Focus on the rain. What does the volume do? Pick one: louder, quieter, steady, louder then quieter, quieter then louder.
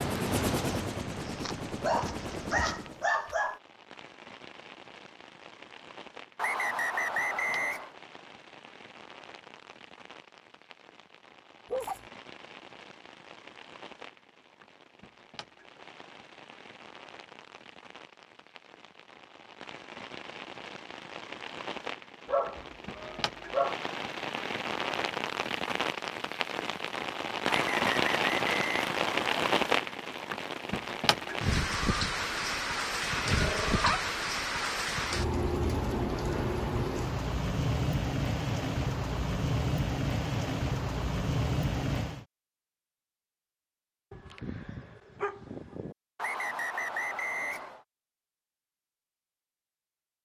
louder.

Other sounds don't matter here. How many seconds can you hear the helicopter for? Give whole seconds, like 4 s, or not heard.
3 s.